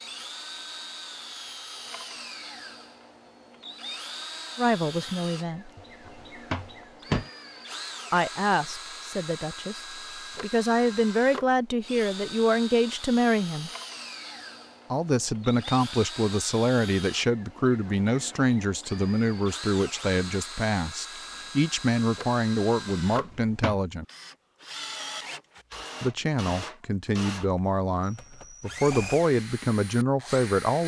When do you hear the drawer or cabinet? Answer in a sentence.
You can hear the drawer or cabinet from 5.8 to 7.3 s and from 23.1 to 23.8 s.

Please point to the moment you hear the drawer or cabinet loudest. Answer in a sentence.
The volume of the drawer or cabinet peaks at 7 seconds.